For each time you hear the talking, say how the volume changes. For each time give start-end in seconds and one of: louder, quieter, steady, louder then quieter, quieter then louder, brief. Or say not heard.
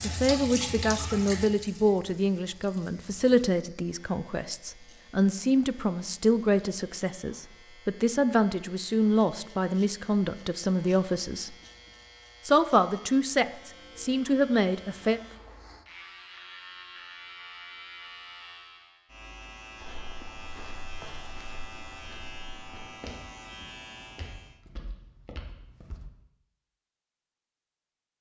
0.0-11.6 steady
12.4-15.2 brief.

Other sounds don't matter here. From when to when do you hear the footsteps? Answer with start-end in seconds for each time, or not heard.
19.8-26.1.